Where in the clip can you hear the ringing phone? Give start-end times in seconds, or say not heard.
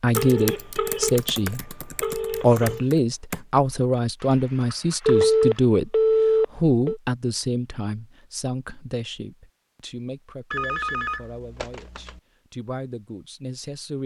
0.1-2.8, 5.0-7.0, 10.5-12.2.